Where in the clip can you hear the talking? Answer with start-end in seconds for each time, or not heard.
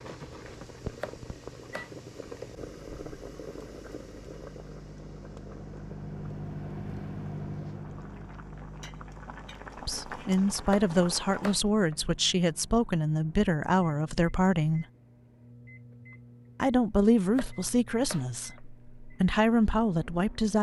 9.8-14.8, 16.6-20.5.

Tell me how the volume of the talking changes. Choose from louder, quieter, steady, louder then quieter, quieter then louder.
steady.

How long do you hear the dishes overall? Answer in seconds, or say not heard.
not heard.